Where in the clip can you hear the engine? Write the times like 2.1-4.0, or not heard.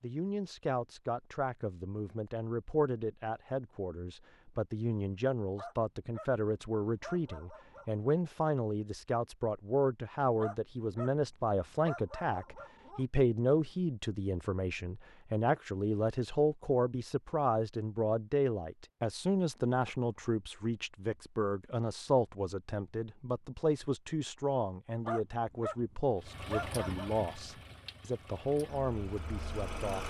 26.2-30.0.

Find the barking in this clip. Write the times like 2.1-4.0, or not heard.
5.5-8.0, 10.3-13.1, 25.1-27.1.